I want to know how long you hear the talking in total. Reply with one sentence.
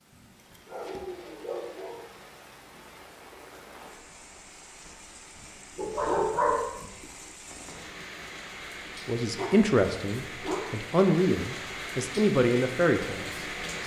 You can hear the talking for 4 seconds altogether.